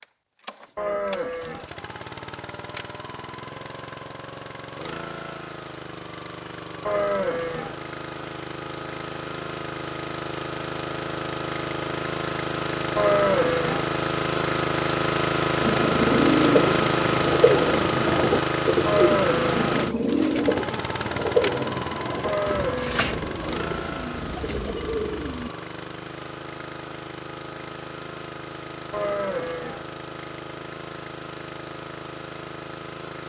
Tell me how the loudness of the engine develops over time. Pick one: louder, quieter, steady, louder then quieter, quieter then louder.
louder then quieter.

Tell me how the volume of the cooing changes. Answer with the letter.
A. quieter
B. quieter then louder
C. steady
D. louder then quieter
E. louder
A.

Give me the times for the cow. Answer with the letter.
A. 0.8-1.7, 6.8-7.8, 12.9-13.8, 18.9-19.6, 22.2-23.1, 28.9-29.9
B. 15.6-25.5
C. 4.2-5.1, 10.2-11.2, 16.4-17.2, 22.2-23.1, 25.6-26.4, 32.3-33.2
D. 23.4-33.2
A.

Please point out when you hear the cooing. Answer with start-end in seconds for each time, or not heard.
15.6-25.5.